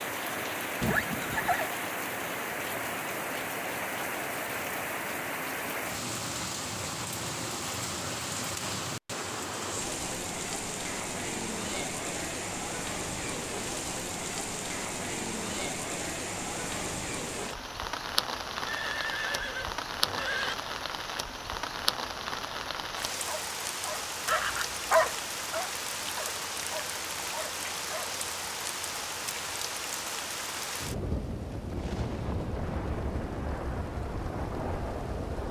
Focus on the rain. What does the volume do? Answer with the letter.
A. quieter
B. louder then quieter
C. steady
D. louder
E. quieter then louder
C.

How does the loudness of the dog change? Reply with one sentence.
The loudness of the dog goes up, then down.